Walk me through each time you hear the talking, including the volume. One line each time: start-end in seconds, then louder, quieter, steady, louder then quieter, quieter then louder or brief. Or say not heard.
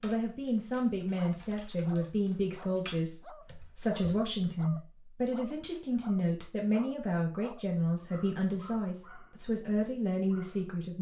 0.0-10.9 steady.